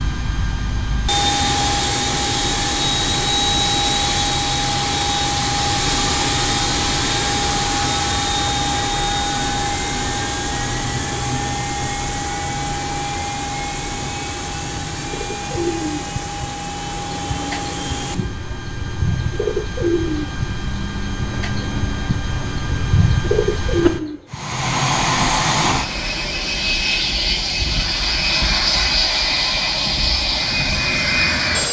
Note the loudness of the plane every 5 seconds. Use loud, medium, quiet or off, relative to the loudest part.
loud, loud, medium, medium, medium, loud, loud.